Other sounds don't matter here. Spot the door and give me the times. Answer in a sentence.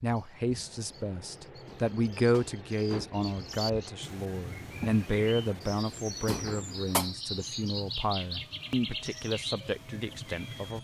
You can hear the door from 1.6 to 3.2 s and from 6.2 to 7.0 s.